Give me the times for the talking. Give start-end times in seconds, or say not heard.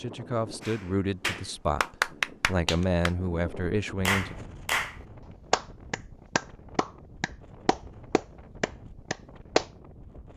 0.0-4.3.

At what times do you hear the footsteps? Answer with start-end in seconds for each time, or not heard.
not heard.